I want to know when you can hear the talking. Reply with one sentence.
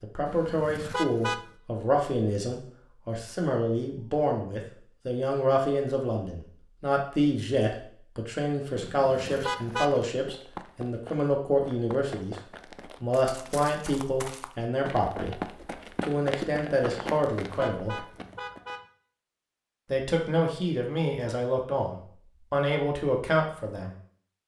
You can hear the talking from 0.0 to 12.3 s, from 13.0 to 18.0 s and from 19.9 to 23.9 s.